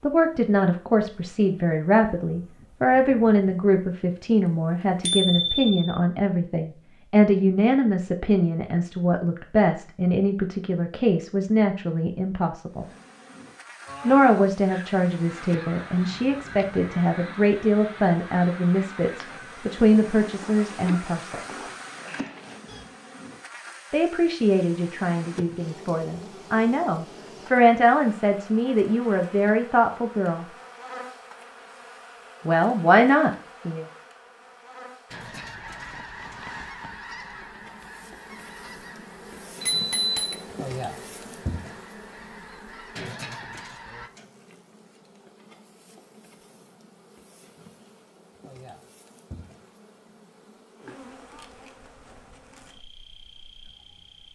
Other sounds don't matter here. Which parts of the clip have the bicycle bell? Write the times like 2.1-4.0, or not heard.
5.0-5.8, 39.6-40.4.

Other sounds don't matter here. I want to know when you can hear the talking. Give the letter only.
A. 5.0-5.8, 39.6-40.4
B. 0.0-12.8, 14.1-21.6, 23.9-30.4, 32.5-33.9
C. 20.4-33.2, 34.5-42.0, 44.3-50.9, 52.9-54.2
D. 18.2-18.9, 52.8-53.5
B.